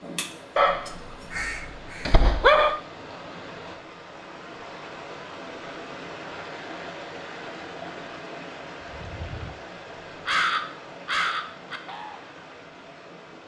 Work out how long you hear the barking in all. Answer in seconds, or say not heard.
2 s.